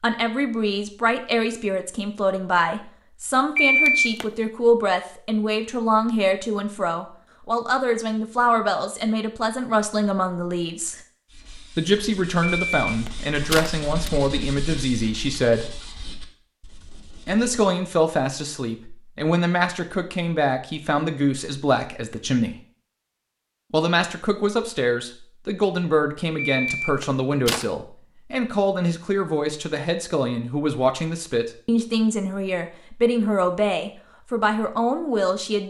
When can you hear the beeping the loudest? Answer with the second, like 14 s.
4 s.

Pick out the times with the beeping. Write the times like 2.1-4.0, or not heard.
3.5-4.2, 12.5-14.1, 26.4-27.6.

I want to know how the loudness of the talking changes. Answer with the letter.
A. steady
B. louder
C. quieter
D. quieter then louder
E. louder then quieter
A.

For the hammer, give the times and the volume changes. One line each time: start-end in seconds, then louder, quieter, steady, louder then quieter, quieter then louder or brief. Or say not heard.
not heard.